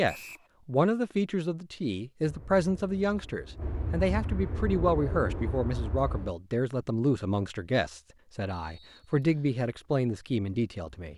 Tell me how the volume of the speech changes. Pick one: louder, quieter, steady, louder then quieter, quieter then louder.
steady.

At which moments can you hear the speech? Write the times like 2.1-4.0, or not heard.
0.0-11.1.